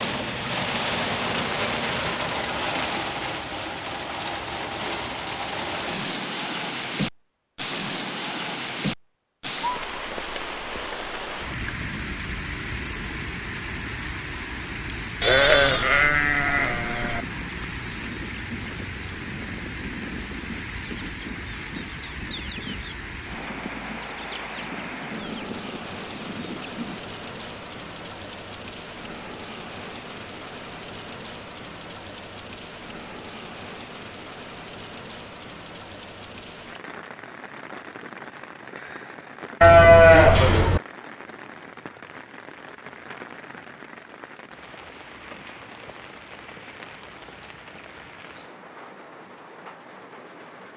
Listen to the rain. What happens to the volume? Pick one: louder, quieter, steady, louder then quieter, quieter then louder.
quieter.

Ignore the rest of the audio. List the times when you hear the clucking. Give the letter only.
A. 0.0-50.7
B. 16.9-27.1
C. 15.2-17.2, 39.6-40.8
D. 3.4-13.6
B.